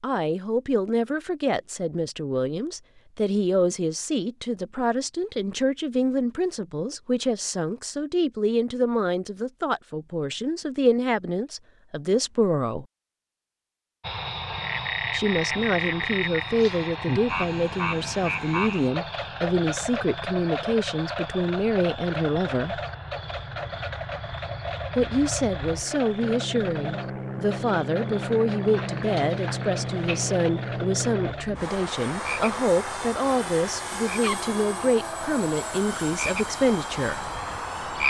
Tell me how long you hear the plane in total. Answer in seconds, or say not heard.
24 s.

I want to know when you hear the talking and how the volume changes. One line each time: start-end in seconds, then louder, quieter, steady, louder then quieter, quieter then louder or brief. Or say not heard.
0.0-12.8 steady
15.1-22.8 steady
24.9-37.3 steady.